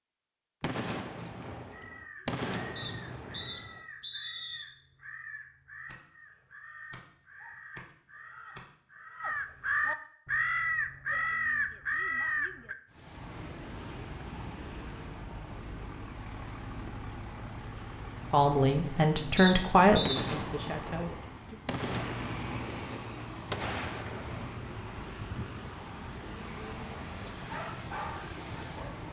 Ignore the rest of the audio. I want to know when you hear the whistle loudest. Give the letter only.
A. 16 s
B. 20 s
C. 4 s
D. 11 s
B.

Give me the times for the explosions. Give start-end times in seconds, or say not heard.
0.6-3.9, 20.0-24.6.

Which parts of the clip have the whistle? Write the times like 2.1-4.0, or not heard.
2.8-4.7, 19.4-20.2.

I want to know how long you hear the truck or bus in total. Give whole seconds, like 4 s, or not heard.
16 s.